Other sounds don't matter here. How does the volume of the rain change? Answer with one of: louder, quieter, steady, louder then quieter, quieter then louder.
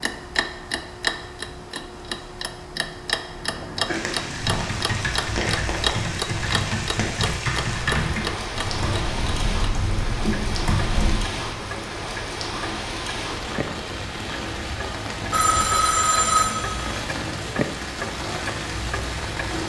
steady.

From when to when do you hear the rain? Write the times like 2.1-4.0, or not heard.
3.9-19.6.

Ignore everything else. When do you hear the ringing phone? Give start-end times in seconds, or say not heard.
15.3-16.9.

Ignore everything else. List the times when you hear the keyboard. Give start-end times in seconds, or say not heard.
4.3-11.2.